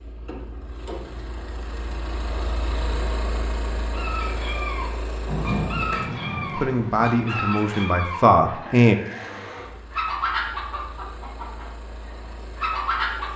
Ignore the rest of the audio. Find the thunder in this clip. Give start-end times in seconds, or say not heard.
5.2-7.1.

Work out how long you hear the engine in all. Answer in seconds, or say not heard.
13 s.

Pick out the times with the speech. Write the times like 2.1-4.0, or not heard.
6.5-8.9.